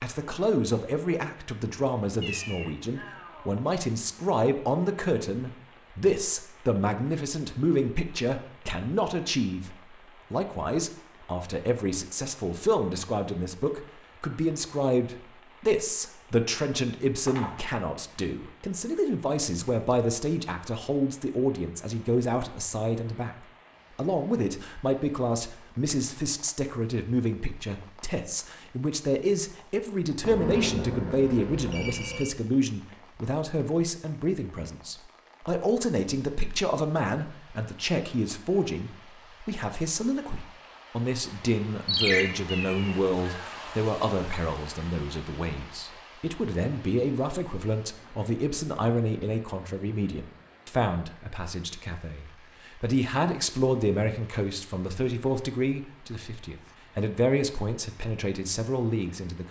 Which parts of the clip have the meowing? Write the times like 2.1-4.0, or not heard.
2.2-3.6, 42.5-43.6.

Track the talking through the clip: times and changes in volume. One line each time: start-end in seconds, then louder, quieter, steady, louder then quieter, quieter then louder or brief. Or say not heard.
0.0-59.4 steady.